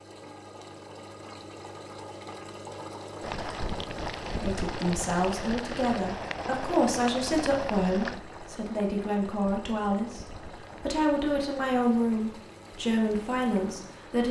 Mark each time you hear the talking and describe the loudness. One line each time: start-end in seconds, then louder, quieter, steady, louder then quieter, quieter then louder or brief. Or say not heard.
4.3-14.2 steady.